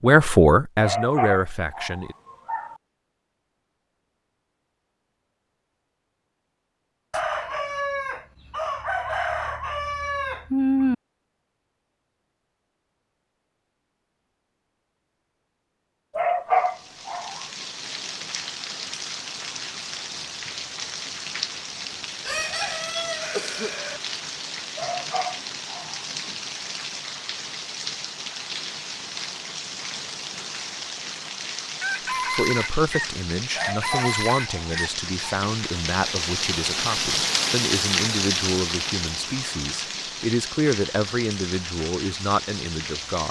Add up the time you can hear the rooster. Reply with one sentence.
You can hear the rooster for 9 seconds altogether.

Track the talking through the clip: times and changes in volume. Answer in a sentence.
You can hear the talking briefly from 0.0 to 2.1 s; and from 32.3 to 43.2 s, at a steady volume.